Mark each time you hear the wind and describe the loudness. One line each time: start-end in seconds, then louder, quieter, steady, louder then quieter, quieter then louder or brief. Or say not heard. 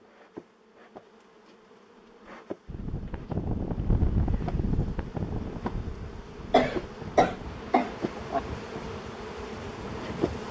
2.6-10.4 quieter.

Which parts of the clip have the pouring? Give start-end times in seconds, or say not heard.
not heard.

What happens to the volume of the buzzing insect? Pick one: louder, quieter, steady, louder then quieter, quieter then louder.
louder.